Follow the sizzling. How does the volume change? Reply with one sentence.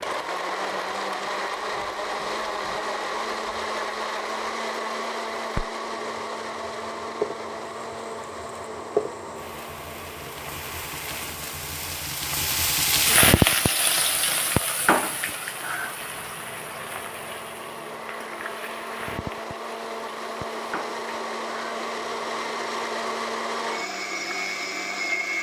The volume of the sizzling goes up, then down.